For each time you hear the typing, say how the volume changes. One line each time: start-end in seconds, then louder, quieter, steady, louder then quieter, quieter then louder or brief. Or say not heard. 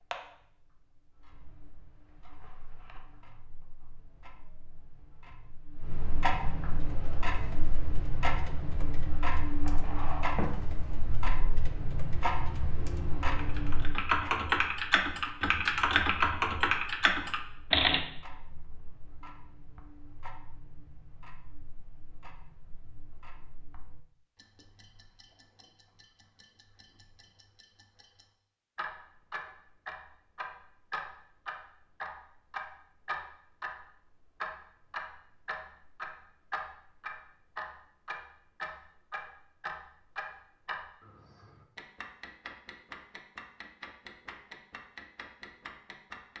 6.8-18.0 louder.